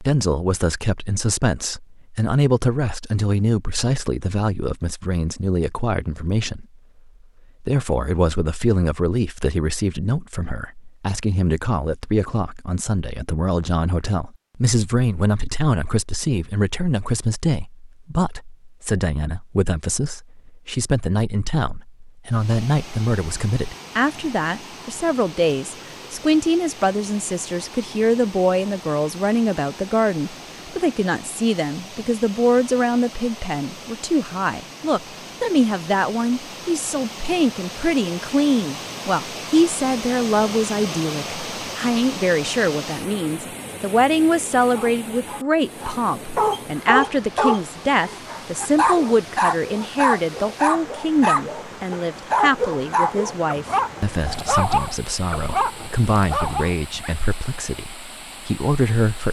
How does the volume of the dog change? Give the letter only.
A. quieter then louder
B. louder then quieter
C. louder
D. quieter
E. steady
E.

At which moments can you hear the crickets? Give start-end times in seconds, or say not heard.
not heard.